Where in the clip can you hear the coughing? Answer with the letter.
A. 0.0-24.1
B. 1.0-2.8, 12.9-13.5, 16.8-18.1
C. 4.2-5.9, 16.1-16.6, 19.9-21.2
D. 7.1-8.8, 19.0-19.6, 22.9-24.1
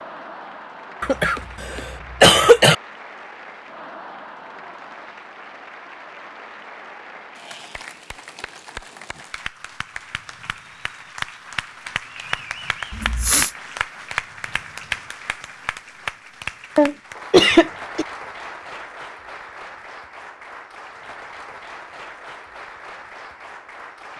B.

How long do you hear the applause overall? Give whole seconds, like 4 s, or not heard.
24 s.